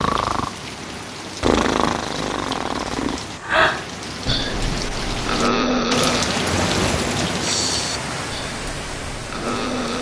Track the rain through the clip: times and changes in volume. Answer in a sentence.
The rain can be heard from 0.0 to 9.9 s, getting louder then quieter.